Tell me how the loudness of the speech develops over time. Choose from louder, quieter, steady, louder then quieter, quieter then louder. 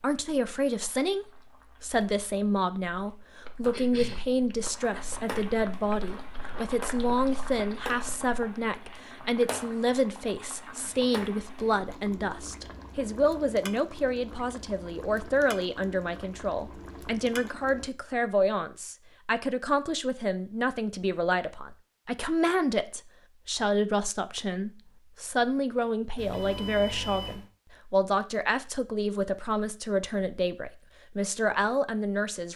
steady.